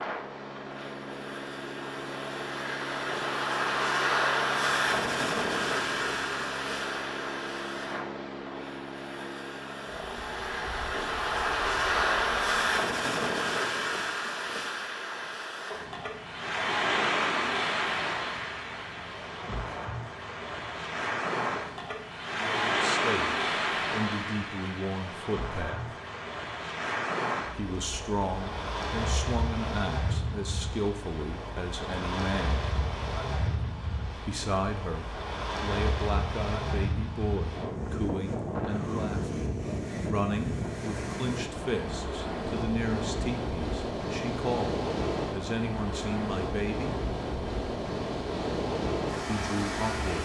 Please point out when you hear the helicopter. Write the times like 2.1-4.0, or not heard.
0.0-12.8.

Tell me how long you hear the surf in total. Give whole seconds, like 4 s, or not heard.
50 s.